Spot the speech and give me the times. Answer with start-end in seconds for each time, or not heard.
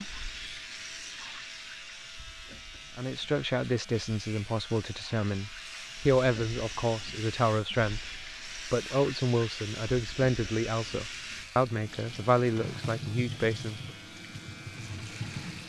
3.0-13.9.